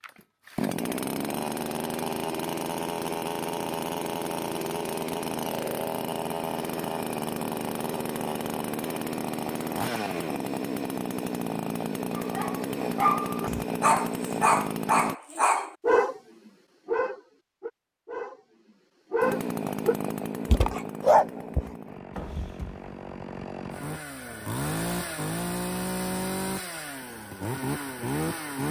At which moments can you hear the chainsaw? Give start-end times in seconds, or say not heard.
0.0-15.2, 19.2-28.6.